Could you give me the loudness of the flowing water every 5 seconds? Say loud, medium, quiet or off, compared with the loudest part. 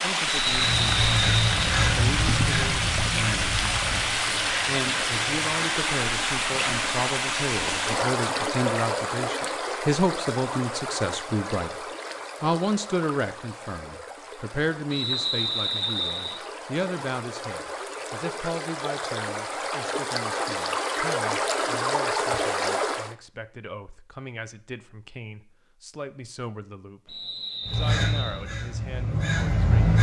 loud, loud, medium, medium, loud, off.